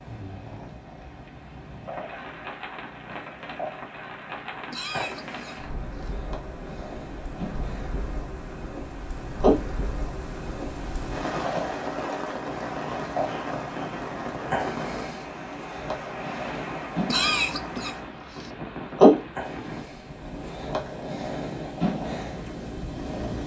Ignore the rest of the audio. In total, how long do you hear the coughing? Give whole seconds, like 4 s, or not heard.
3 s.